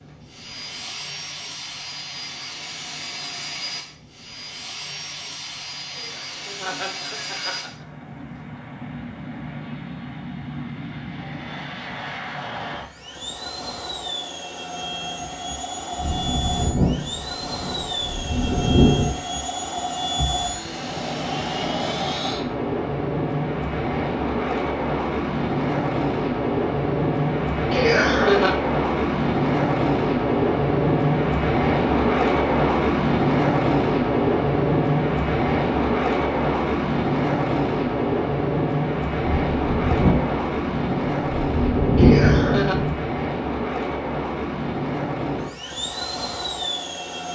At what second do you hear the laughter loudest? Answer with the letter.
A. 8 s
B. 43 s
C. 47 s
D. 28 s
D.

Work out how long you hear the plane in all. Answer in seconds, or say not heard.
47 s.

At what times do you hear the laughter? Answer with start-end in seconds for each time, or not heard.
6.0-8.2, 27.7-28.6, 42.0-42.8.